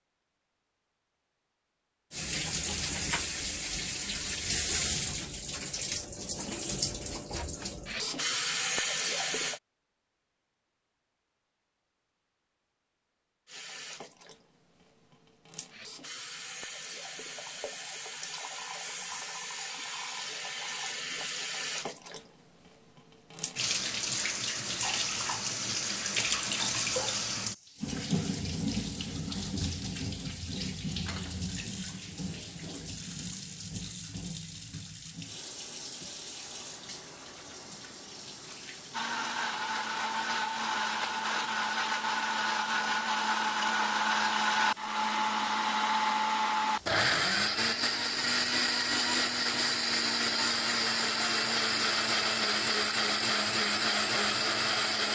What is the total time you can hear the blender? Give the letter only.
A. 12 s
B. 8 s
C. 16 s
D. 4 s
C.